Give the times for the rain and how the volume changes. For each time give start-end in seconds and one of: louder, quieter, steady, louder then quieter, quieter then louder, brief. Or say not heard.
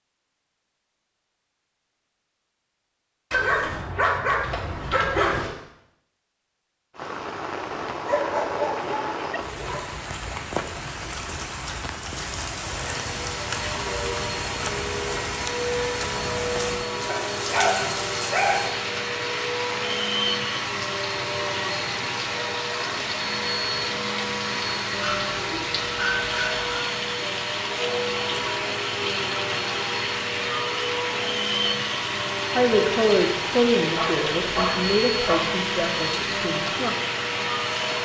6.9-37.9 steady.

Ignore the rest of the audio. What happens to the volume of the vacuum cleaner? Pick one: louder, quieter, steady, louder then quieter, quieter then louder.
steady.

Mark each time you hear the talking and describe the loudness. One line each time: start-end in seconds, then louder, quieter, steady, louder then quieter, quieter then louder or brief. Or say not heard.
32.5-37.0 quieter.